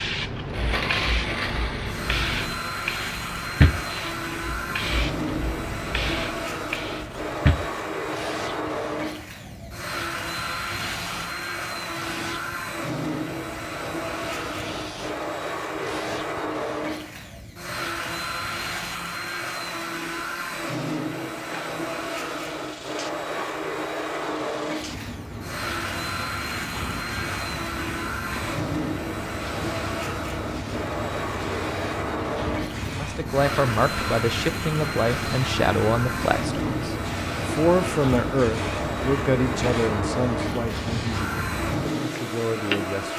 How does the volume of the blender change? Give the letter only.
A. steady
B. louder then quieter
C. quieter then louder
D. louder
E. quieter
A.